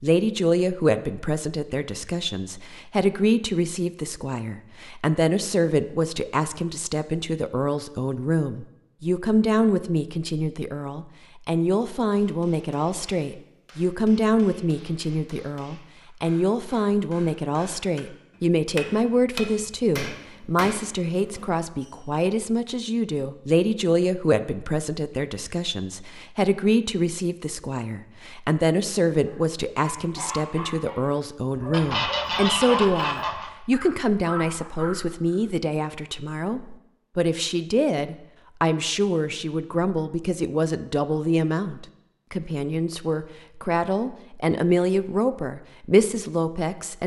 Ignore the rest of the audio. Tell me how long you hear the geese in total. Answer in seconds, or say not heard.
2 s.